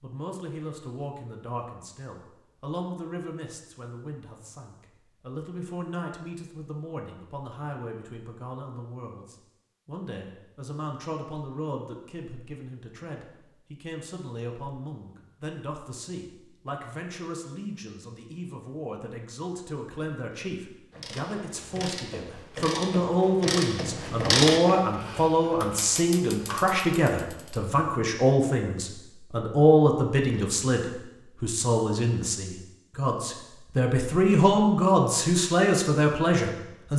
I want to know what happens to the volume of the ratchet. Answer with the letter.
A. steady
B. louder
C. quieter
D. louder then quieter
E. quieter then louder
D.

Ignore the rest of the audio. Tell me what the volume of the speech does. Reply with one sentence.
The volume of the speech goes up.